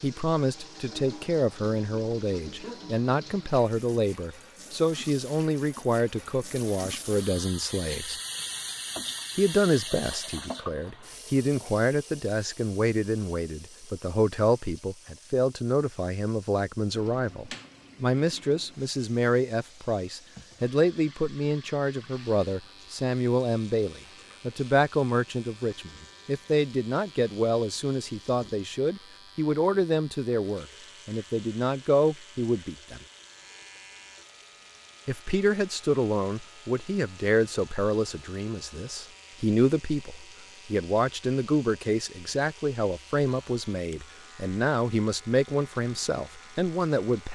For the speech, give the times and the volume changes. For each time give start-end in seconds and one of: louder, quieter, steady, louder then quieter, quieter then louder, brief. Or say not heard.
0.0-8.2 steady
9.3-33.0 steady
35.0-47.2 steady.